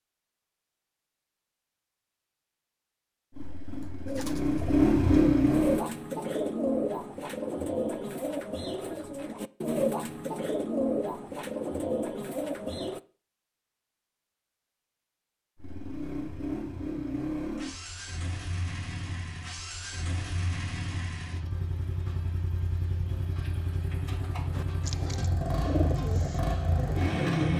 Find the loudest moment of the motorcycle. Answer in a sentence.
The loudest moment of the motorcycle is at 5 seconds.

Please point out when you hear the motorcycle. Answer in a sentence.
The motorcycle can be heard from 3.3 to 5.8 s and from 15.6 to 27.5 s.